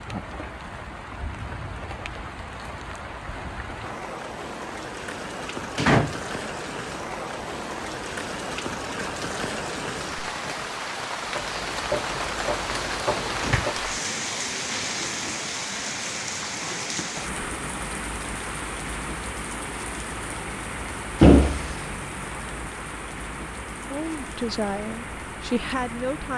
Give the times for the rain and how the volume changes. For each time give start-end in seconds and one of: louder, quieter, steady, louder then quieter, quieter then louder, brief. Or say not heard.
0.0-26.3 louder then quieter.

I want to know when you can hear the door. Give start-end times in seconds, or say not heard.
5.8-6.2, 12.2-13.7, 21.2-21.8.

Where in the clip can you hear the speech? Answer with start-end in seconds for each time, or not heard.
23.9-26.3.